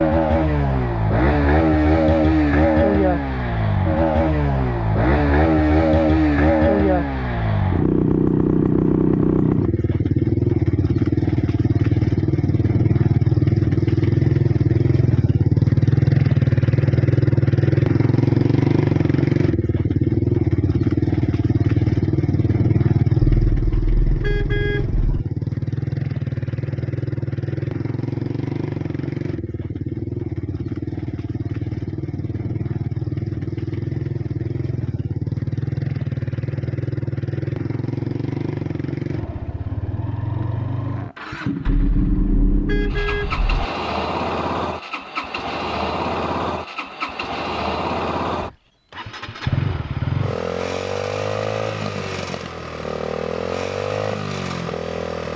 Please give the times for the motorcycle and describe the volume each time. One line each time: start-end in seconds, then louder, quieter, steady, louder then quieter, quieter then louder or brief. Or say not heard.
0.0-55.3 quieter.